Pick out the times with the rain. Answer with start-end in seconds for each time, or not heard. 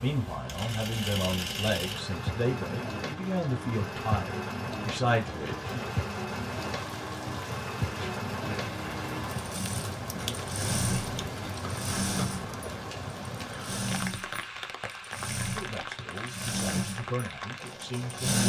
0.0-18.4.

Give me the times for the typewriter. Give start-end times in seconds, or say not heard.
not heard.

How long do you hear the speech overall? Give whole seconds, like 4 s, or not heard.
9 s.